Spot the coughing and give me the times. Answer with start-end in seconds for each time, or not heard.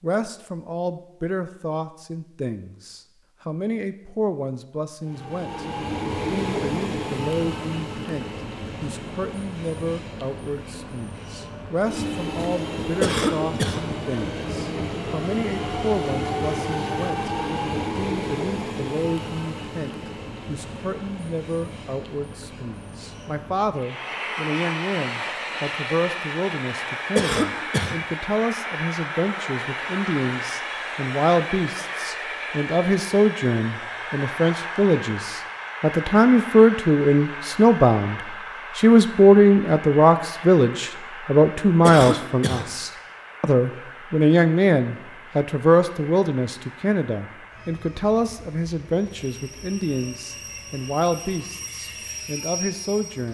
13.0-13.8, 27.1-28.0, 41.8-42.7.